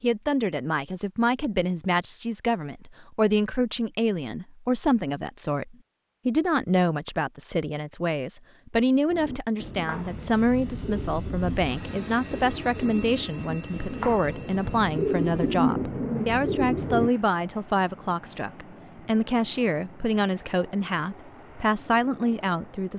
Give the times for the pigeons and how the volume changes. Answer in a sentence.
The pigeons can be heard from 9.1 to 17.1 s, getting louder.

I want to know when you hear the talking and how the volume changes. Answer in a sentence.
You can hear the talking from 0.0 to 22.9 s, at a steady volume.